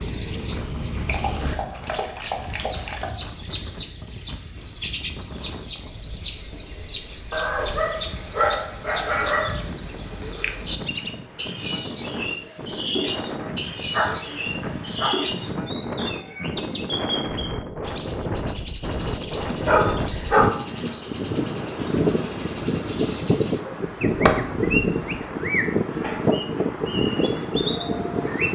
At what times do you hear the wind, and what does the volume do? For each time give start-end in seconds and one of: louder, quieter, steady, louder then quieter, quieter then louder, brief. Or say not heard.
0.0-28.5 louder.